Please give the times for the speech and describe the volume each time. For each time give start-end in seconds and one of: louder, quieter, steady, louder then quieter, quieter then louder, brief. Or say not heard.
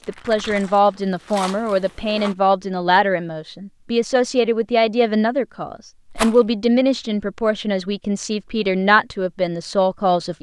0.1-10.3 steady.